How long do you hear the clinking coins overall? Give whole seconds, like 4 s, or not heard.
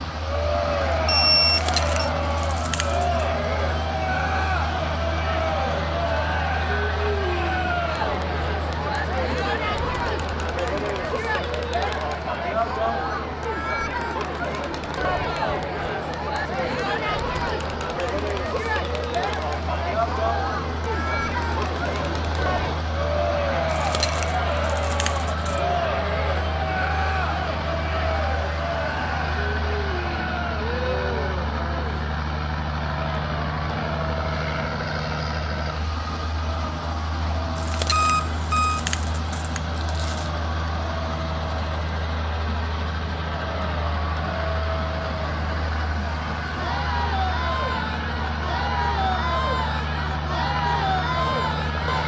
6 s.